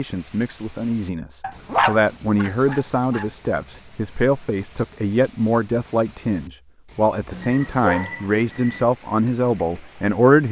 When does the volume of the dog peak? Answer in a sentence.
The loudest moment of the dog is at 2 seconds.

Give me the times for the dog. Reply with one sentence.
You can hear the dog from 1.4 to 3.2 s and from 7.3 to 8.8 s.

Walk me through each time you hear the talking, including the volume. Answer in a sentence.
You can hear the talking from 0.0 to 10.4 s, at a steady volume.